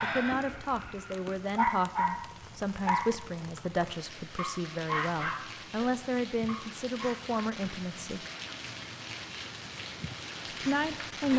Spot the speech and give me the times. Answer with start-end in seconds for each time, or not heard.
0.0-8.2, 10.6-11.3.